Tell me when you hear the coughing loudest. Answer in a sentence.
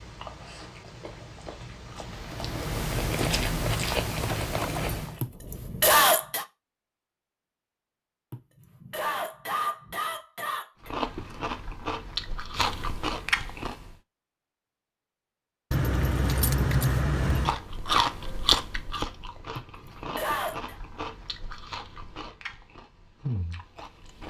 The volume of the coughing peaks at 6 seconds.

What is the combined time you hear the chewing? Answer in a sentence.
The chewing can be heard for 15 seconds in total.